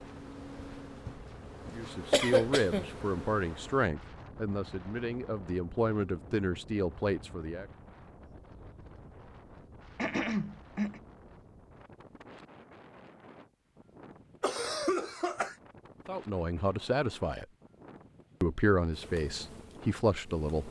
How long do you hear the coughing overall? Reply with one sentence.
The coughing can be heard for 3 seconds in total.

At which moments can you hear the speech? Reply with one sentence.
You can hear the speech from 1.7 to 7.7 s, from 16.1 to 17.4 s and from 18.4 to 20.6 s.